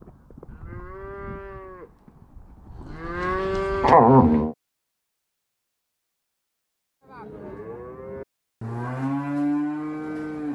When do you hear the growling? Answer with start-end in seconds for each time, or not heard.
3.8-4.5.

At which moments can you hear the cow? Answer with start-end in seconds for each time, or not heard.
0.0-4.4, 7.0-10.5.